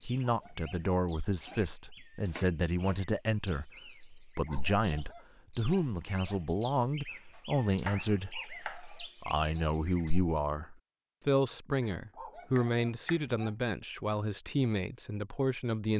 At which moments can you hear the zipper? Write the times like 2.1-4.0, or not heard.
not heard.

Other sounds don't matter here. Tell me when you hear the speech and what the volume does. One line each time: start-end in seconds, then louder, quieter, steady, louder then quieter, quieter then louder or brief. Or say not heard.
0.0-15.9 steady.